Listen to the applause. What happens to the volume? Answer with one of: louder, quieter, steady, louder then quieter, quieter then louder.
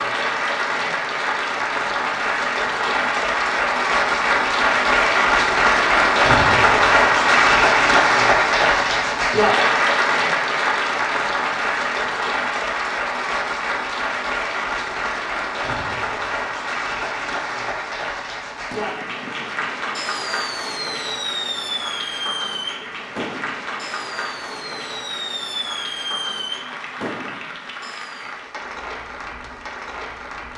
quieter.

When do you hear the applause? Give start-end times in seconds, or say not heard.
0.0-30.5.